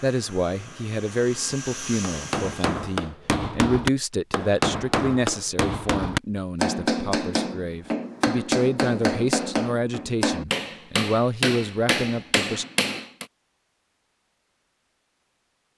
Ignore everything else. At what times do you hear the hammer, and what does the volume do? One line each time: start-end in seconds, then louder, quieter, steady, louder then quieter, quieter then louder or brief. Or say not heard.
2.1-13.2 steady.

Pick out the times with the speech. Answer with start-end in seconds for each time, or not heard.
0.0-12.7.